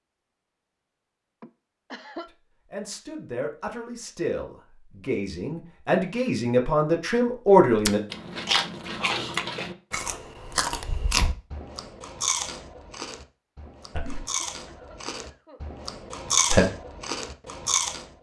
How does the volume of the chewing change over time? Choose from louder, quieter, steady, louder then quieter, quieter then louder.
quieter then louder.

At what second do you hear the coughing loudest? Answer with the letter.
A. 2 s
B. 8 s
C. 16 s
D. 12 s
A.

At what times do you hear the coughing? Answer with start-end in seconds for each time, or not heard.
1.4-2.3, 13.7-15.7.